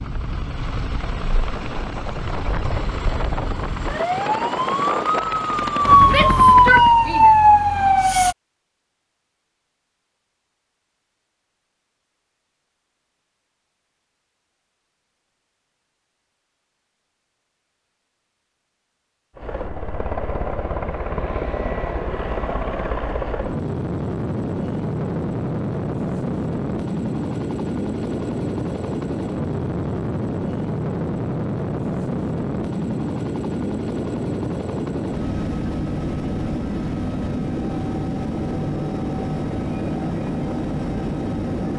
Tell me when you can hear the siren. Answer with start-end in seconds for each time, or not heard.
0.0-8.3.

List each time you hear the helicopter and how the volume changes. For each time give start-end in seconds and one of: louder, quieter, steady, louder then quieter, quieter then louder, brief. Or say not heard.
0.0-7.0 louder
19.4-41.7 steady.